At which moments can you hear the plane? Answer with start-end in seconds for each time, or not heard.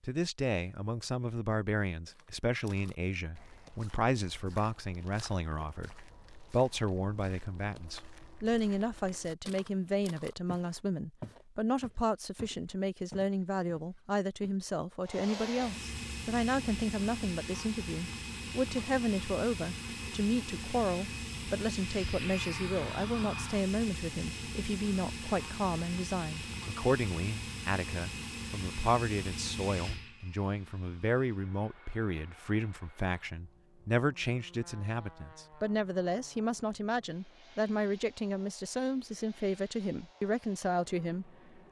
15.1-41.6.